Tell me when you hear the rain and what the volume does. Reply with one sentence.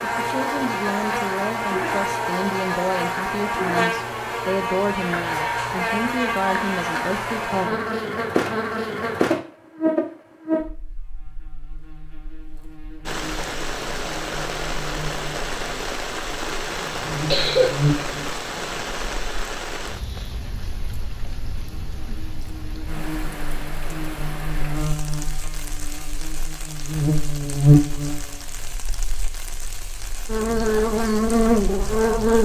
The rain can be heard from 13.1 to 32.4 s, getting quieter.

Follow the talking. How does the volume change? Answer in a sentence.
The loudness of the talking stays about the same.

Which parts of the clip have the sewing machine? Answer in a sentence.
The sewing machine can't be heard in this clip.